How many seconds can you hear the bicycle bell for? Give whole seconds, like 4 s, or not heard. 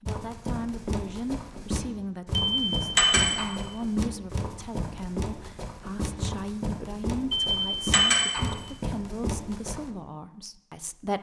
2 s.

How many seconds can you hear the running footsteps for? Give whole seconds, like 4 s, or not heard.
10 s.